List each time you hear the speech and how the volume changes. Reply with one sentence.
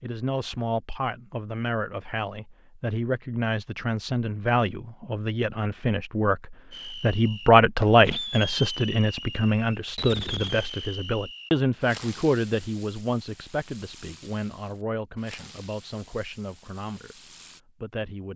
You can hear the speech from 0.0 to 18.3 s, getting louder then quieter.